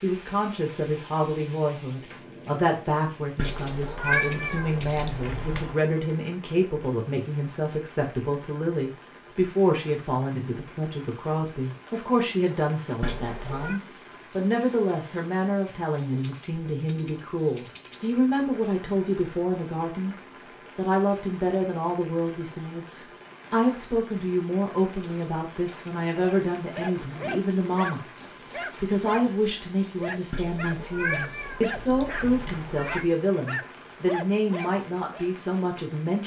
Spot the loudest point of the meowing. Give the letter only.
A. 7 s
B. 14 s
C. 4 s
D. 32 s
C.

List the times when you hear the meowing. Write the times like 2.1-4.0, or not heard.
3.4-5.8, 13.0-13.8, 30.3-33.0.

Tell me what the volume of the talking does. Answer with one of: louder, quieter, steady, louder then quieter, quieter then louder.
steady.